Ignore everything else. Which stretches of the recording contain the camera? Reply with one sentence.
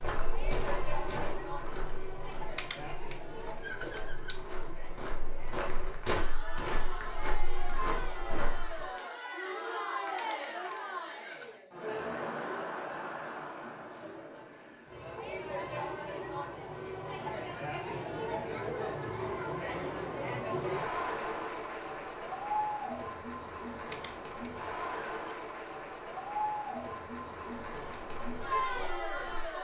The camera can be heard from 2.5 to 4.4 s, from 10.2 to 11.6 s and from 23.9 to 25.4 s.